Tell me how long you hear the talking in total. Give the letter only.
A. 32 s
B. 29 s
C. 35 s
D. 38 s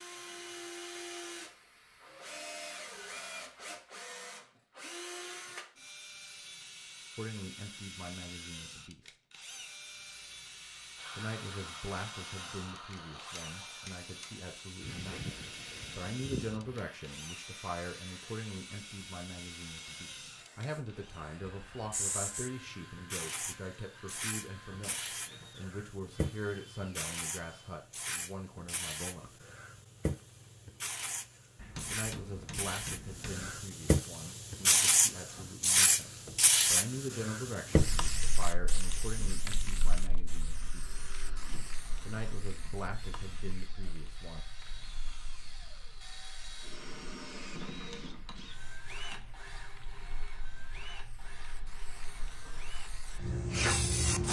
A.